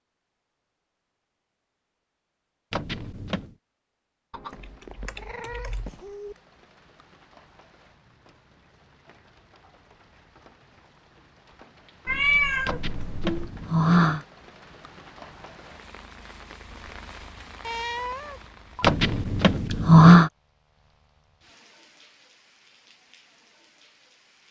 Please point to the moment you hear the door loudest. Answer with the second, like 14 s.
20 s.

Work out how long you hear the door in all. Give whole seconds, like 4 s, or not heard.
4 s.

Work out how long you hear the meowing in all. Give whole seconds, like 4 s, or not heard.
5 s.